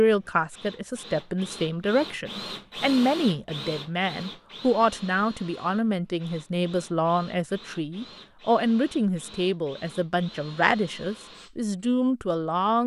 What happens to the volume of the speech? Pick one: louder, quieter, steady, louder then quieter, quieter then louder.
steady.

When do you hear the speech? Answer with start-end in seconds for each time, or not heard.
0.0-12.8.